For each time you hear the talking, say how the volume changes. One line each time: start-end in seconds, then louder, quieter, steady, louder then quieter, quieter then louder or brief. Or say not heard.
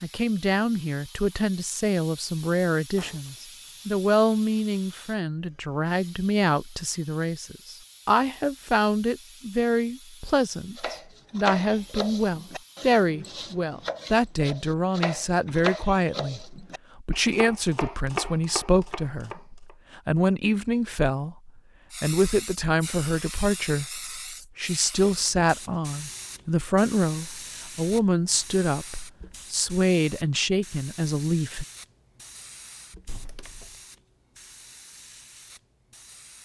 0.0-31.6 steady.